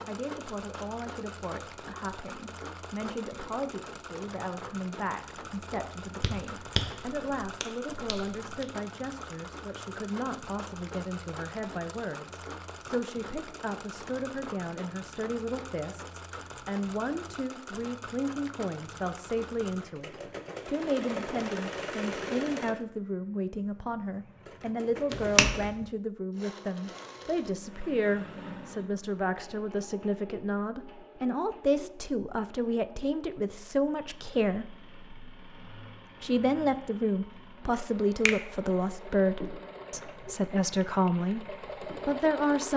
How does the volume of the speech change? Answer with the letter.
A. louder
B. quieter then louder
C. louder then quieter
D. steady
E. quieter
A.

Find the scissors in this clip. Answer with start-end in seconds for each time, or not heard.
not heard.